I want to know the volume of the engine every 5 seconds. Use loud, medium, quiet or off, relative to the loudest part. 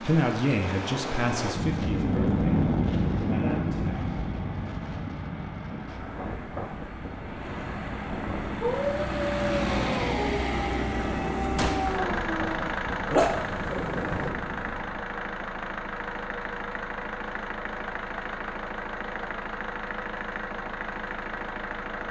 quiet, loud, loud, loud, loud.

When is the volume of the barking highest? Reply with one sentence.
The loudest moment of the barking is at 13 seconds.